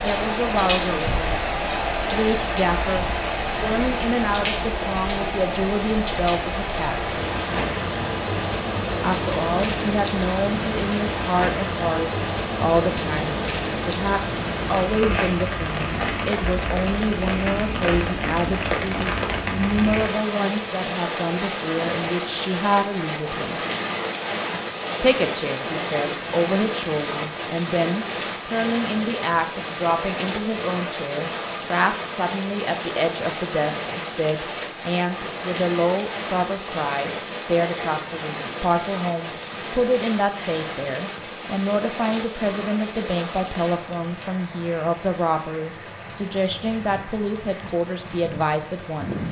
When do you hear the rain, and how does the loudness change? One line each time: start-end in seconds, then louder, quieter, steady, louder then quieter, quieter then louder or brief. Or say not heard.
0.0-49.2 quieter.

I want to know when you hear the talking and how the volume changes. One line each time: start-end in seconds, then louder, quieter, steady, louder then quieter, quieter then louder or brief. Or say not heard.
0.0-7.1 steady
9.0-23.6 steady
25.0-49.2 steady.